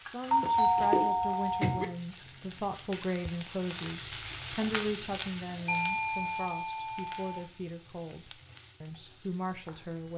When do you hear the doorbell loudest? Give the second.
1 s.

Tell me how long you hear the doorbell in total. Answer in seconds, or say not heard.
3 s.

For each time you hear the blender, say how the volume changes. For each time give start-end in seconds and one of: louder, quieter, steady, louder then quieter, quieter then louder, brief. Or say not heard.
not heard.